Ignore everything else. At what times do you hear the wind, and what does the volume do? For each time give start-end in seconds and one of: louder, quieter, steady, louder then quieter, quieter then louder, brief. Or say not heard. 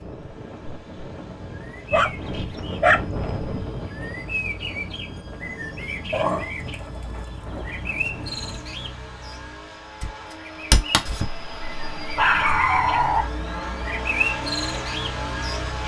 0.0-8.7 louder then quieter.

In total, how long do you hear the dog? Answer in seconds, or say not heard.
5 s.